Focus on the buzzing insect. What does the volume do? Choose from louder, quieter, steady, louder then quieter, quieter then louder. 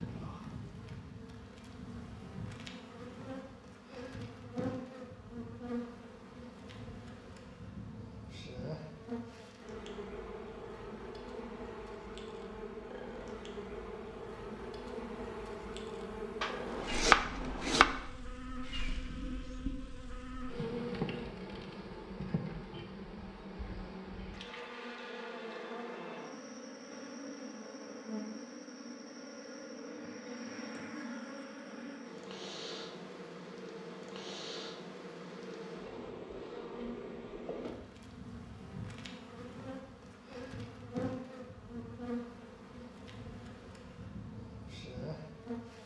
steady.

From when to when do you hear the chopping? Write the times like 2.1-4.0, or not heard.
16.4-17.9.